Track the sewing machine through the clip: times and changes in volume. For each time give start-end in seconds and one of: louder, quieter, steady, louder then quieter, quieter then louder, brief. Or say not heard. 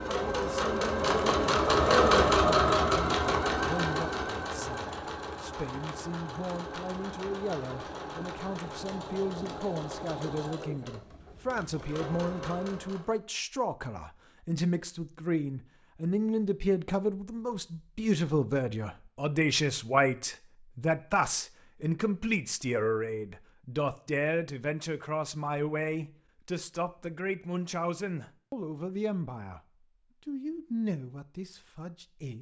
0.0-13.2 quieter.